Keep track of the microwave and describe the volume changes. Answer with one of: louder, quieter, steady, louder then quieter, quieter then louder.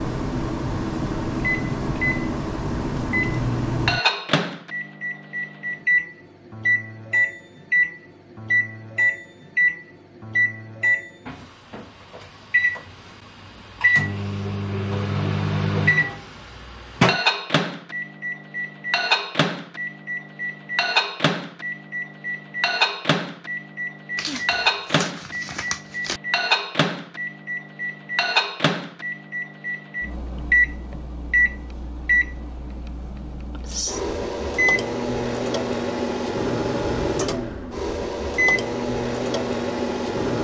steady.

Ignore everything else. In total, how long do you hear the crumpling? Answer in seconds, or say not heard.
2 s.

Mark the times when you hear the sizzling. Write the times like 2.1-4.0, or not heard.
not heard.